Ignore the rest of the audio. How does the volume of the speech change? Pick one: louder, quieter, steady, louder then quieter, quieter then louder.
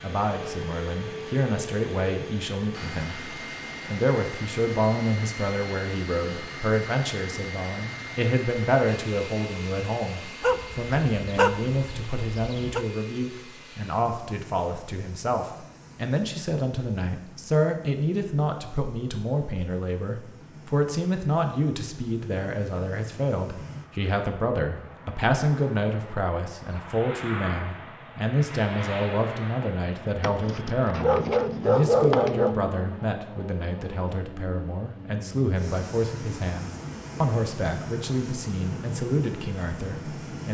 steady.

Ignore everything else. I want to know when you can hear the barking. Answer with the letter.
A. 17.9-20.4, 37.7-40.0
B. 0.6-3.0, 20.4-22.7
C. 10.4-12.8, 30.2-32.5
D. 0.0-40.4
C.